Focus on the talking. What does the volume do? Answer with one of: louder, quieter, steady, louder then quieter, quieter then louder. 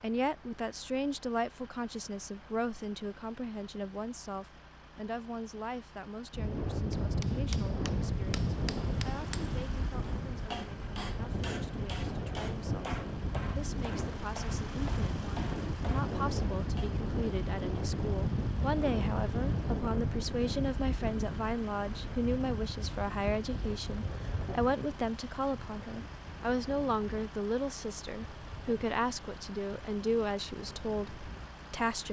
quieter then louder.